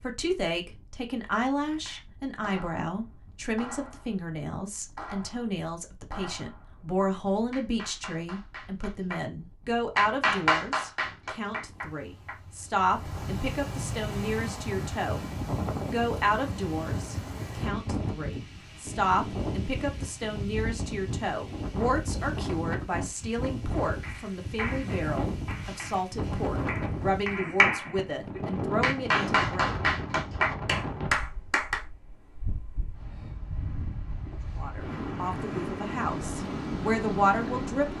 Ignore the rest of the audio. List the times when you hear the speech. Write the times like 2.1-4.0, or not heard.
0.0-15.3, 15.9-29.8, 34.5-37.9.